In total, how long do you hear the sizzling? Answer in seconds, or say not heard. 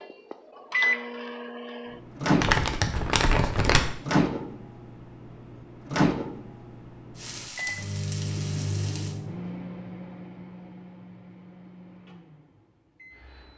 2 s.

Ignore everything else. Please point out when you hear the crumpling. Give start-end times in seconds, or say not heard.
2.4-3.9.